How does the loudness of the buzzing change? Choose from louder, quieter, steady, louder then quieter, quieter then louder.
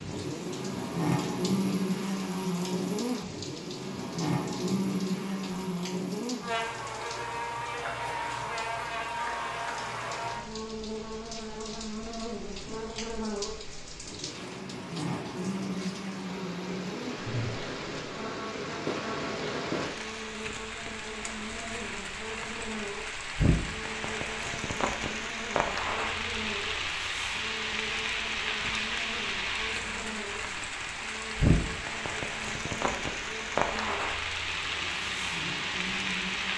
quieter.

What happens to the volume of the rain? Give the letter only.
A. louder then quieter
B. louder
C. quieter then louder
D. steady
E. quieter
B.